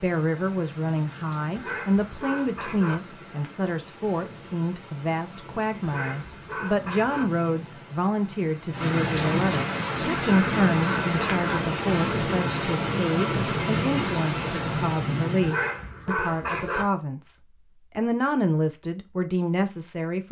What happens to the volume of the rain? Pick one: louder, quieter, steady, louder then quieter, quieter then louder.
louder.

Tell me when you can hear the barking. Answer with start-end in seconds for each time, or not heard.
1.6-3.0, 5.8-7.2, 10.2-11.6, 15.4-16.9.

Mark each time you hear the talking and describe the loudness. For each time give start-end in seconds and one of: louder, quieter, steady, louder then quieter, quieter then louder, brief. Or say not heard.
0.0-20.2 steady.